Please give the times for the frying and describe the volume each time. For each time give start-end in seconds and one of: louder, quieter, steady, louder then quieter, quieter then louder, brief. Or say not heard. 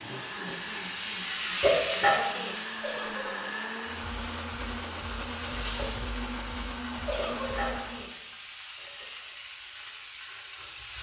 0.0-10.9 quieter.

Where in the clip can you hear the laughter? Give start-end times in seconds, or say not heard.
2.8-3.3, 7.0-7.8.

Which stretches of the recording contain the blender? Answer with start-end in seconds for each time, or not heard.
0.0-8.1.